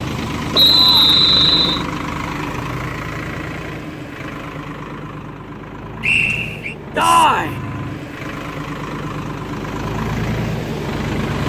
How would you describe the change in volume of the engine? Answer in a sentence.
The volume of the engine goes down, then up.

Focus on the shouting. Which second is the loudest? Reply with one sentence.
The loudest moment of the shouting is at 7 seconds.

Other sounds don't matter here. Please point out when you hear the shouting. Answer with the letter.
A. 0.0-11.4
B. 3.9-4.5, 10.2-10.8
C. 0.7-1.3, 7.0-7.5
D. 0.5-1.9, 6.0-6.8
C.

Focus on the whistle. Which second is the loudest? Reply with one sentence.
The volume of the whistle peaks at 1 second.